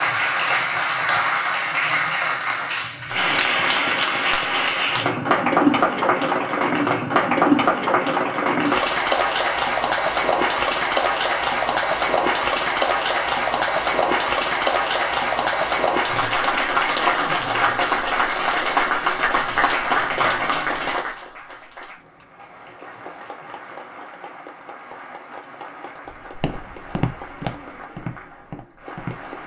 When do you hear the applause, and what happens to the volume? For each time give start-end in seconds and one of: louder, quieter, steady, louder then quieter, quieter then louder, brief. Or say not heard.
0.0-29.4 quieter.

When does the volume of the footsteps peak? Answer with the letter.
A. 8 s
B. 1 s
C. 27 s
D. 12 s
C.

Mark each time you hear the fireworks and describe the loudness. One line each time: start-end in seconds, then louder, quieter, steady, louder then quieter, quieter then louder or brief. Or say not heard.
not heard.